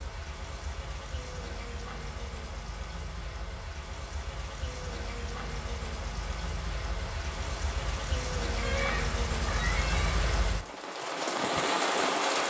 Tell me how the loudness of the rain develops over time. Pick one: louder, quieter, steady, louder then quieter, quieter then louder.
louder.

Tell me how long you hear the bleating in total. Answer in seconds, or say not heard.
2 s.